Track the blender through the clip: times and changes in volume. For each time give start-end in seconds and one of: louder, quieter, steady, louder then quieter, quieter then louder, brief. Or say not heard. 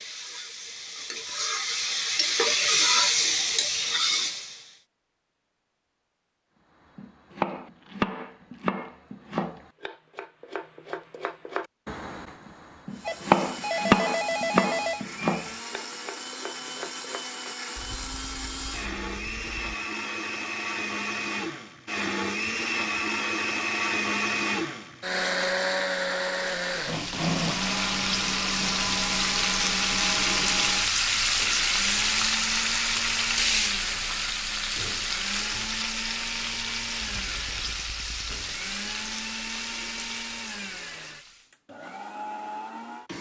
12.9-43.1 louder then quieter.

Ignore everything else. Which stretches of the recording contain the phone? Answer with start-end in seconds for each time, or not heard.
13.1-15.1.